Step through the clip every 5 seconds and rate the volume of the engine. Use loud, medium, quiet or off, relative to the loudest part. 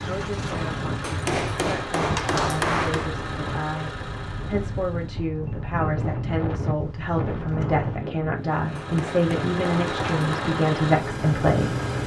medium, medium, loud.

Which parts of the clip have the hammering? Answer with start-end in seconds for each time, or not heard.
1.0-3.1, 8.8-10.3.